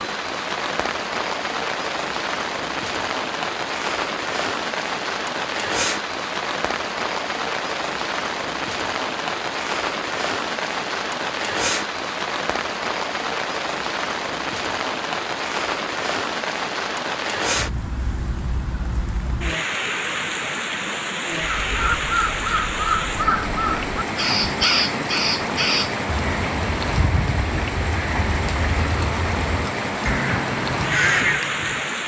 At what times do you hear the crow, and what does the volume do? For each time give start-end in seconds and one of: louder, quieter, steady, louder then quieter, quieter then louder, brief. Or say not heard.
21.4-31.9 quieter then louder.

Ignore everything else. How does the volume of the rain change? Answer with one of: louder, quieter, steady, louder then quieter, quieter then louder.
steady.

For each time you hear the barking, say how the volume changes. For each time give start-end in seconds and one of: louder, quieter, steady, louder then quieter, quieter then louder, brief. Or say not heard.
not heard.